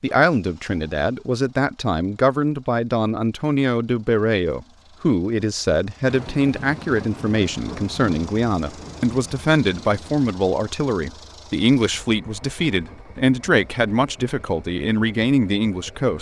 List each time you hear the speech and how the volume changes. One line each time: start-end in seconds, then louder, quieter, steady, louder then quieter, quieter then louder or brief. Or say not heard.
0.0-16.1 steady.